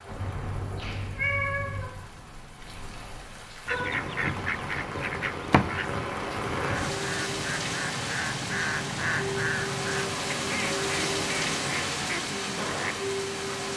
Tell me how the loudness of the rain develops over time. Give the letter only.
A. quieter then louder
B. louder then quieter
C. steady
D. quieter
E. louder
E.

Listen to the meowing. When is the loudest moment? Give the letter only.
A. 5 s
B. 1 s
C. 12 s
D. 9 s
B.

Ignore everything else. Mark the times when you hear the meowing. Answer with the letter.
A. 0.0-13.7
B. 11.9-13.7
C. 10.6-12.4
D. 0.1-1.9
D.